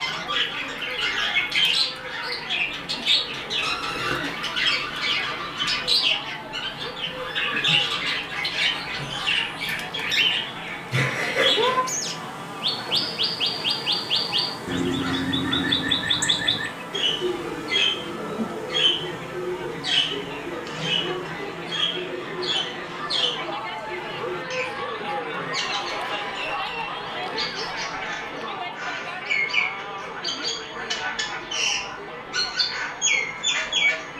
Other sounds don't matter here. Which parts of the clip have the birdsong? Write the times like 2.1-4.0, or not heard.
0.0-34.1.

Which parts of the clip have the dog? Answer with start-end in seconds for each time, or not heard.
not heard.